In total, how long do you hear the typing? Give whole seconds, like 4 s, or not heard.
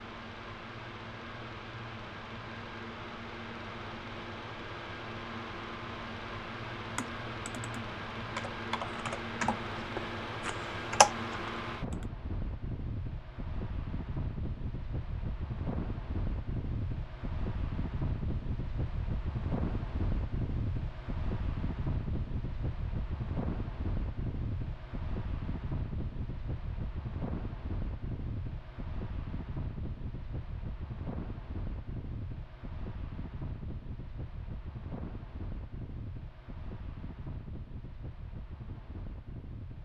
5 s.